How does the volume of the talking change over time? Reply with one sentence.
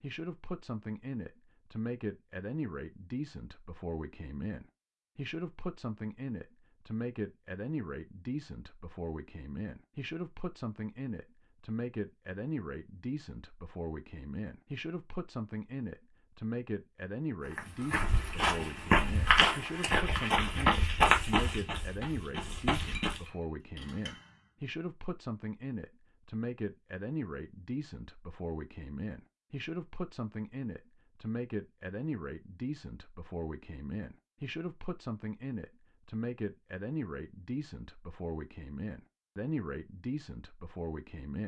The loudness of the talking stays about the same.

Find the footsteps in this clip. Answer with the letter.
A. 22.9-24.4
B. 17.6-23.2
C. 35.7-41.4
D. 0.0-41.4
B.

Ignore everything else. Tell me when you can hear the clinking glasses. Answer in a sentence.
You can hear the clinking glasses from 22.9 to 24.4 s.